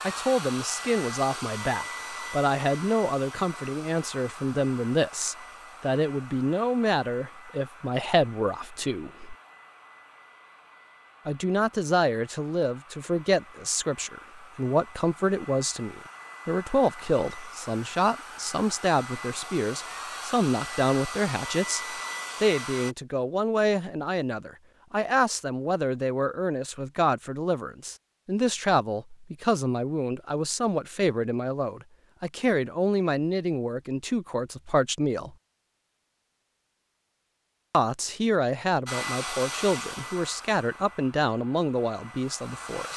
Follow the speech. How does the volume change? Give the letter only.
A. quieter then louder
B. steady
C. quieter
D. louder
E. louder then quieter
B.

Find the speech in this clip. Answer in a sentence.
The speech can be heard from 0.1 to 9.3 s, from 11.2 to 35.4 s and from 37.7 to 42.9 s.